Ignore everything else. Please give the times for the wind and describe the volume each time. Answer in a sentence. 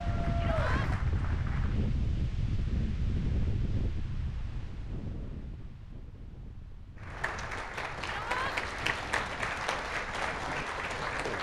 The wind can be heard from 0.0 to 11.3 s, getting quieter.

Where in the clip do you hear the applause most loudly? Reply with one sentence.
The volume of the applause peaks at 9 seconds.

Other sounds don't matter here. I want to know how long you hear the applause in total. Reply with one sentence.
You can hear the applause for 6 seconds altogether.